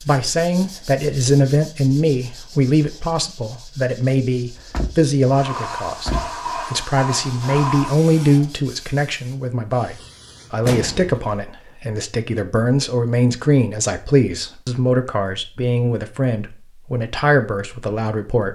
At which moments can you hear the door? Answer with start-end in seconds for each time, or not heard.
4.5-6.3, 10.7-11.4.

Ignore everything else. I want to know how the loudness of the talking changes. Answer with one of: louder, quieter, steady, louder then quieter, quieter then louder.
steady.